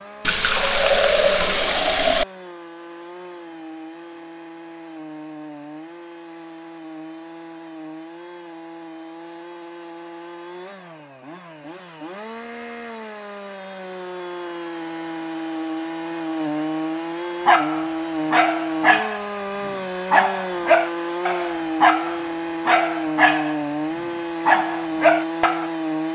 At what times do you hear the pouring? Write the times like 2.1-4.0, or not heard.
0.2-2.2.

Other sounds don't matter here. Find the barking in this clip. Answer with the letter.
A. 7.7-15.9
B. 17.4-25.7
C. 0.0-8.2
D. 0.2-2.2
B.